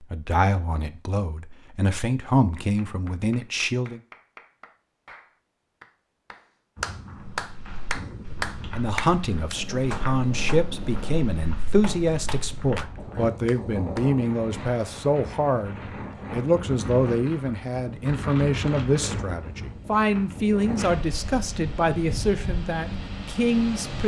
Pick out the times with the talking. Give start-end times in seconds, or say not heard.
0.0-4.0, 8.7-24.0.